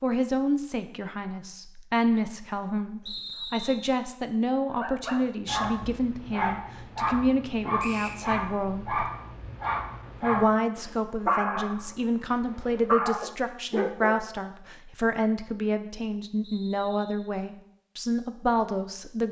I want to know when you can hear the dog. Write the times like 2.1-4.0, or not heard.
4.7-14.2.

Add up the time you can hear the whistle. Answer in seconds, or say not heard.
2 s.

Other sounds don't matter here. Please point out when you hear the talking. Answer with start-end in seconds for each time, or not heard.
0.0-9.1, 10.2-19.2.